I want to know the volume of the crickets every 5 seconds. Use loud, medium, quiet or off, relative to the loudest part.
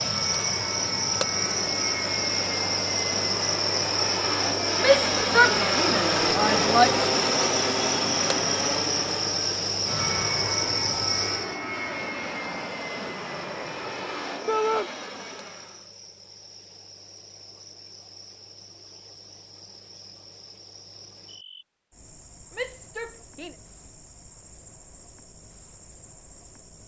loud, loud, medium, quiet, quiet, quiet.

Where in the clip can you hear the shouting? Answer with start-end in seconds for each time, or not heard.
4.8-6.9, 14.4-14.9, 22.6-23.6.